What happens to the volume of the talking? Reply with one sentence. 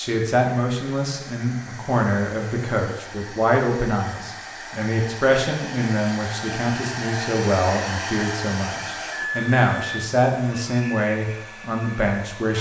The loudness of the talking stays about the same.